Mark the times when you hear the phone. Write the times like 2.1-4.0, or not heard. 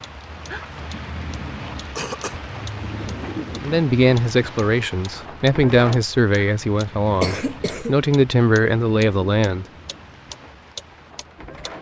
not heard.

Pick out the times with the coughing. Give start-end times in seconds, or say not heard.
1.9-2.4, 7.2-8.1.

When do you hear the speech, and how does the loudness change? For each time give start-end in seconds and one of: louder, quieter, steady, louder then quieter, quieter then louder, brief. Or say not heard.
3.6-9.7 steady.